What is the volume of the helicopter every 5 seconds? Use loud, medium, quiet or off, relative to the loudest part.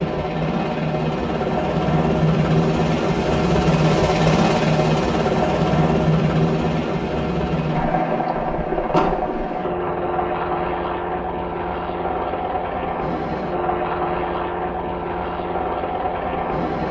loud, loud, medium, medium.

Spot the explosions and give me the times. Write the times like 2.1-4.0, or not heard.
8.9-9.3.